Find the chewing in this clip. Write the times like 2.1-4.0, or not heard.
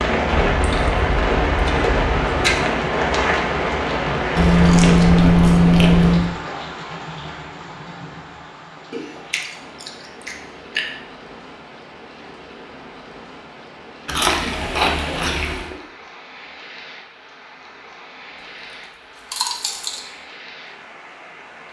0.3-2.6, 4.3-6.3, 8.9-10.8, 14.1-15.8, 19.3-20.1.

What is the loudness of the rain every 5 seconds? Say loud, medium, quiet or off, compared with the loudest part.
loud, medium, quiet, quiet, quiet.